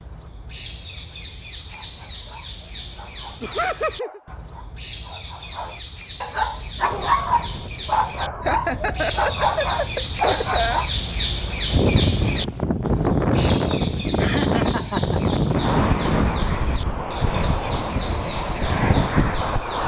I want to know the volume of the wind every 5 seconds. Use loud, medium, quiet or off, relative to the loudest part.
off, quiet, loud, loud.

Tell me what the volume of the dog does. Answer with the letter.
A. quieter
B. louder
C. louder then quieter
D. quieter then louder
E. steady
B.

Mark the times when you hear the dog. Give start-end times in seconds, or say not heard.
1.7-10.9.